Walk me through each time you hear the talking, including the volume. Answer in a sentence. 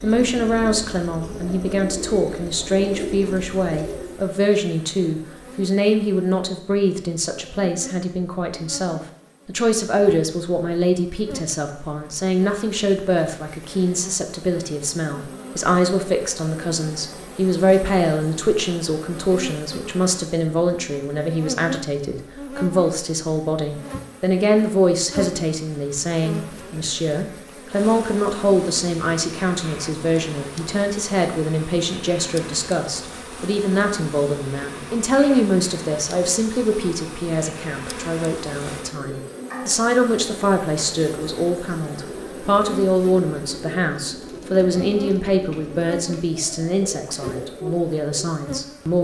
The talking can be heard from 0.0 to 49.0 s, at a steady volume.